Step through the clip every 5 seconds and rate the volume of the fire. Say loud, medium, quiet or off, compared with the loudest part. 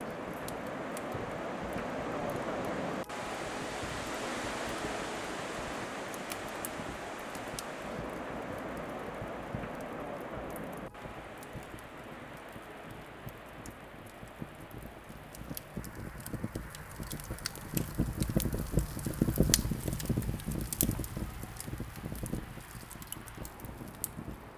quiet, quiet, quiet, loud, medium.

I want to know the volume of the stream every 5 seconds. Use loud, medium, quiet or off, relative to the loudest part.
loud, loud, medium, quiet, quiet.